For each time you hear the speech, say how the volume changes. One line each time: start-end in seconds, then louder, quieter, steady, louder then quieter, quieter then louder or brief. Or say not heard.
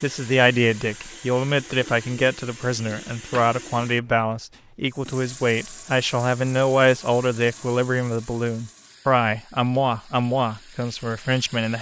0.0-11.7 steady.